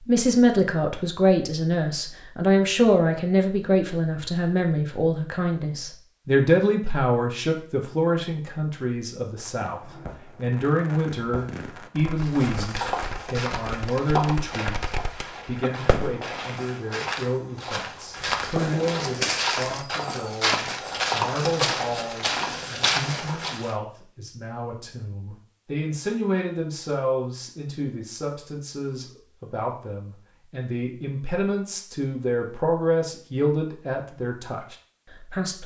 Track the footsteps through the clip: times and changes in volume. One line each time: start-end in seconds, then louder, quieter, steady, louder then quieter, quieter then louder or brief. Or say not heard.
12.2-23.8 quieter then louder.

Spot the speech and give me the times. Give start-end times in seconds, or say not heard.
0.1-35.6.